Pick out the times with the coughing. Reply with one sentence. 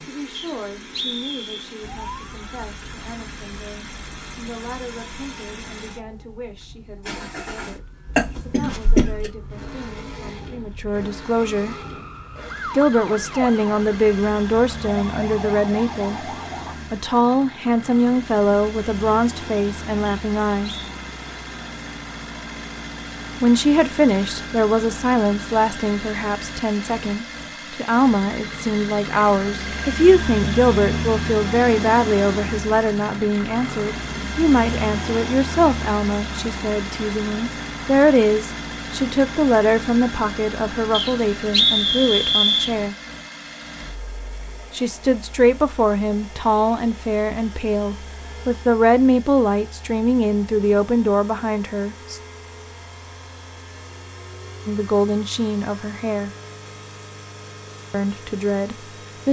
The coughing can be heard from 8.2 to 9.3 s.